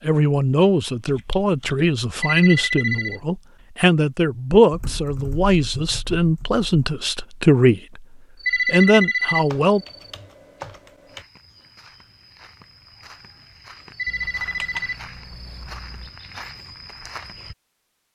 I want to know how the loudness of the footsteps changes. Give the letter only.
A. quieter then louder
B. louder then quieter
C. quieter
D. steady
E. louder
E.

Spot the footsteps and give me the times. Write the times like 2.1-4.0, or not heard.
11.1-17.6.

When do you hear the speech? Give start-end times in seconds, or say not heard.
0.1-8.1, 8.7-9.8.